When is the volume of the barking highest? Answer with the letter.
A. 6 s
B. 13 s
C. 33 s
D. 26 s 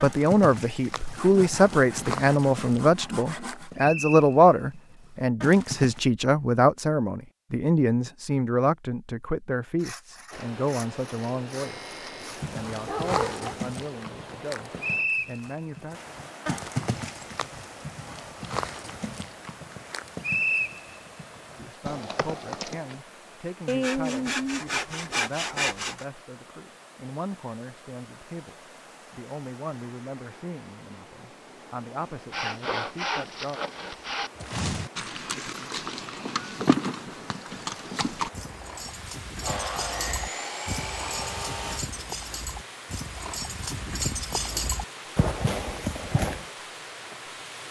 B.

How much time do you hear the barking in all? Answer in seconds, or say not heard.
2 s.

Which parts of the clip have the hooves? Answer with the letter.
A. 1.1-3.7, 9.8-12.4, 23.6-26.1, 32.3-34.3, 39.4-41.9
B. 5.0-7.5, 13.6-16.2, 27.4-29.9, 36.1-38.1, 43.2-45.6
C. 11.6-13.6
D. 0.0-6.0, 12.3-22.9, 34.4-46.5
D.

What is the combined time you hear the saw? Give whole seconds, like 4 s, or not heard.
12 s.